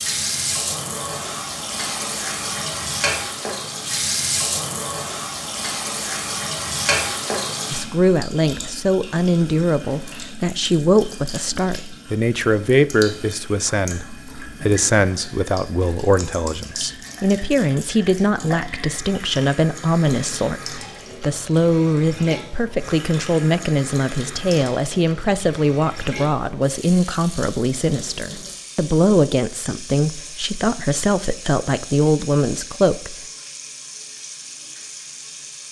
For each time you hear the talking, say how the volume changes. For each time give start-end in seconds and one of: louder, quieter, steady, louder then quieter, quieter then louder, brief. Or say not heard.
7.7-33.1 steady.